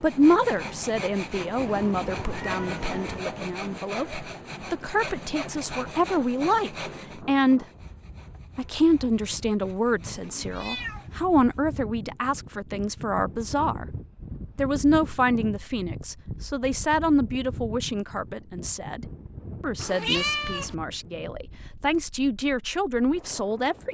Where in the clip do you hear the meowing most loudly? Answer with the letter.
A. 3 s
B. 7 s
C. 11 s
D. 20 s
D.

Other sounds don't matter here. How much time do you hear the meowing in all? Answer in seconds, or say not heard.
4 s.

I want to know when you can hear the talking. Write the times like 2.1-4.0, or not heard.
0.0-7.7, 8.6-13.8, 14.6-23.8.